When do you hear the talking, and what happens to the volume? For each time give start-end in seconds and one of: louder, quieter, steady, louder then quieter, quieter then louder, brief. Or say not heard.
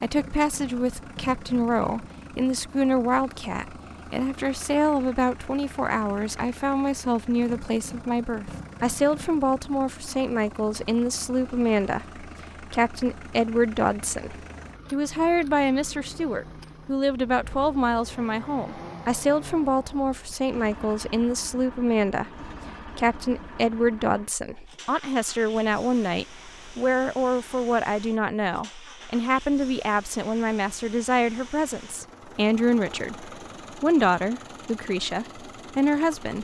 0.0-36.4 steady.